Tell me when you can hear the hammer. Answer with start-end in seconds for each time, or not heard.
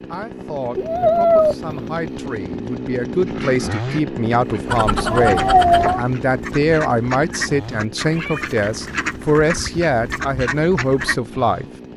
not heard.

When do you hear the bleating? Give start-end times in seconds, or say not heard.
not heard.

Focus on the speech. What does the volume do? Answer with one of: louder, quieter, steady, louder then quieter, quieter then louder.
louder.